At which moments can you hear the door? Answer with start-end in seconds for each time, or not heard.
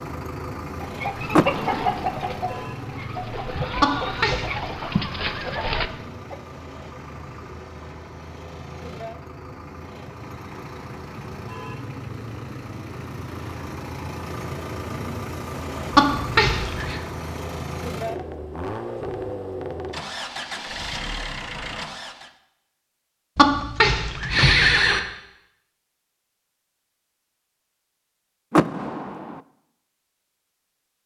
1.3-2.2, 28.5-29.4.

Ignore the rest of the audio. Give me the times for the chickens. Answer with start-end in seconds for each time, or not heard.
0.8-6.3.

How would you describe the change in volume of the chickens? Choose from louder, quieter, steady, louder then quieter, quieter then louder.
quieter then louder.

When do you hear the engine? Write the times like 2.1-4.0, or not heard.
0.0-22.3.